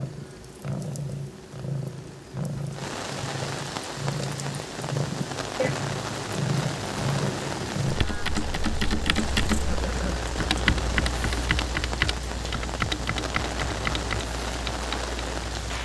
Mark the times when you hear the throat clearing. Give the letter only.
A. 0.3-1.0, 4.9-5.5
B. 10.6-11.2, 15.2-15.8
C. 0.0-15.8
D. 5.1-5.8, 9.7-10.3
D.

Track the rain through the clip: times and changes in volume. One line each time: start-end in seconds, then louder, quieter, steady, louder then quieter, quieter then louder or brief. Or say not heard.
0.0-15.8 louder.